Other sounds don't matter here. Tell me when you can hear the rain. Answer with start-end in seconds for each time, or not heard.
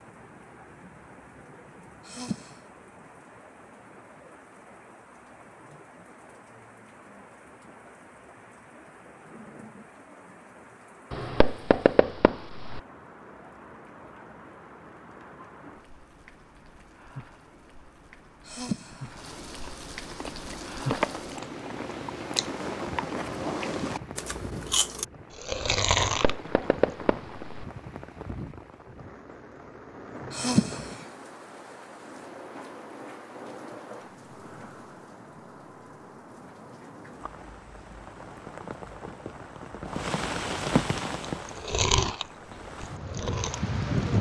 0.0-44.1.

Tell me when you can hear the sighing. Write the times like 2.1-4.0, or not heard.
2.0-2.5, 18.4-19.1, 30.3-31.1.